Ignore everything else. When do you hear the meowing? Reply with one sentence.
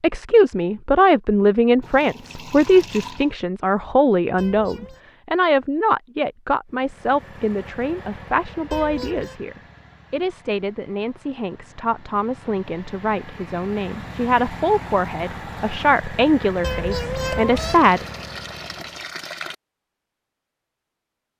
The meowing can be heard from 4.3 to 5.0 s, from 8.7 to 9.4 s and from 16.6 to 17.8 s.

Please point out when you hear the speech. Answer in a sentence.
The speech can be heard from 0.0 to 18.1 s.